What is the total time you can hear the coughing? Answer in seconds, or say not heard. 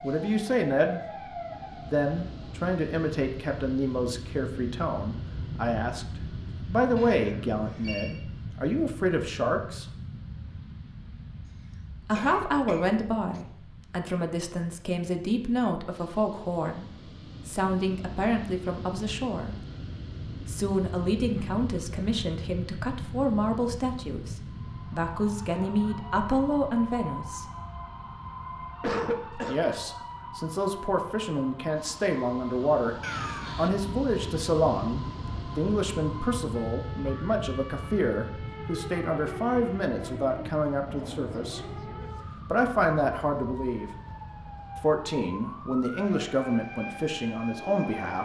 3 s.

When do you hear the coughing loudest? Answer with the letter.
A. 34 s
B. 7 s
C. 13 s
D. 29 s
D.